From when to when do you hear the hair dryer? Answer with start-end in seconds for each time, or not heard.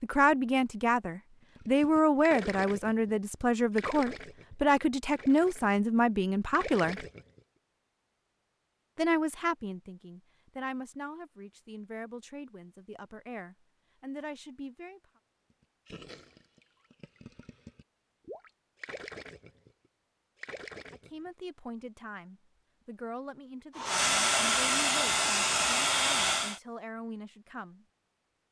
23.8-26.6.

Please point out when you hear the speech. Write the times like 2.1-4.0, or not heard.
0.0-7.0, 8.9-15.0, 20.9-27.9.